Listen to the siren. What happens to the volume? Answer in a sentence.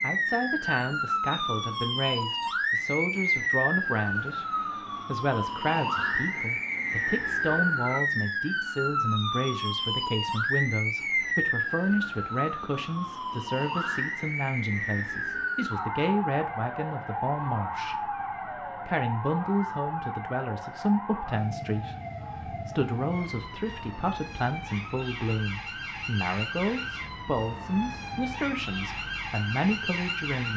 The volume of the siren goes down.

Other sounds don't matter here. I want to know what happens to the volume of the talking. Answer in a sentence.
The volume of the talking stays about the same.